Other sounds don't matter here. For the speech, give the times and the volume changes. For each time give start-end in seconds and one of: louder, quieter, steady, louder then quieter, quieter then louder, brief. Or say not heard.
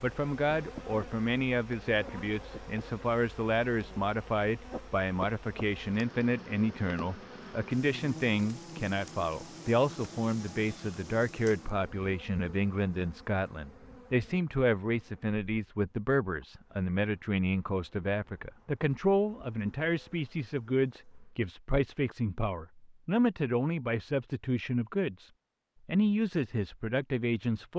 0.0-27.7 steady.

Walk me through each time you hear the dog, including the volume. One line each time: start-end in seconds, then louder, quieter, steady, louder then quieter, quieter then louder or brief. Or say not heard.
not heard.